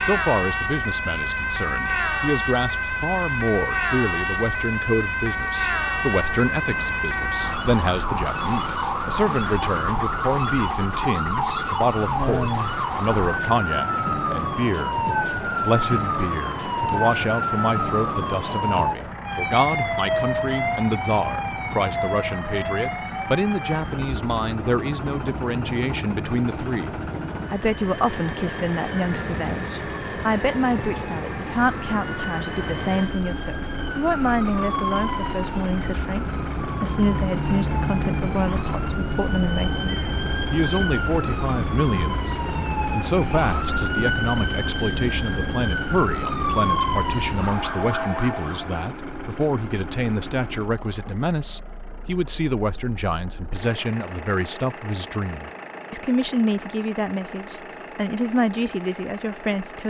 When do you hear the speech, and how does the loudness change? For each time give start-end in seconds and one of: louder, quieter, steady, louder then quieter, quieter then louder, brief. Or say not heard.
0.0-59.8 steady.